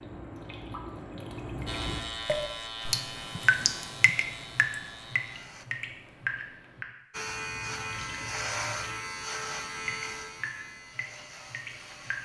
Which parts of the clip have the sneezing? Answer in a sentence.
The sneezing can't be heard in this clip.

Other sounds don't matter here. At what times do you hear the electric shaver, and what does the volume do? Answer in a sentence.
You can hear the electric shaver from 1.6 to 5.7 s, getting quieter; and from 7.1 to 12.2 s, getting quieter.